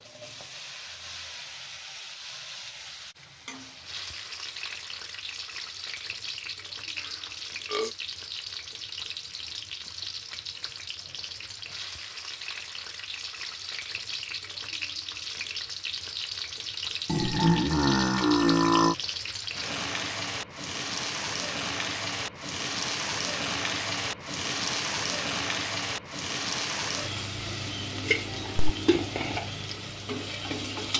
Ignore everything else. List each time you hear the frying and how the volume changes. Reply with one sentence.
The frying can be heard from 0.0 to 30.9 s, getting louder.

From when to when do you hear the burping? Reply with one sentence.
The burping can be heard from 7.0 to 8.0 s and from 17.1 to 18.9 s.